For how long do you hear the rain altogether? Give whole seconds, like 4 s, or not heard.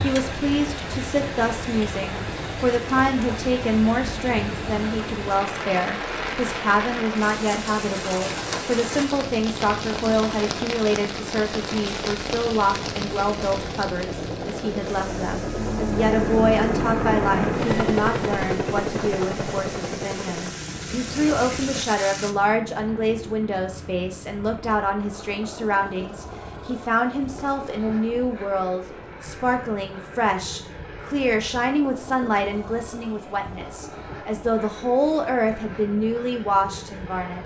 22 s.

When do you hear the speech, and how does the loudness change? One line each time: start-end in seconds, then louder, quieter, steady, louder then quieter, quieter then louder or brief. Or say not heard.
0.0-37.4 steady.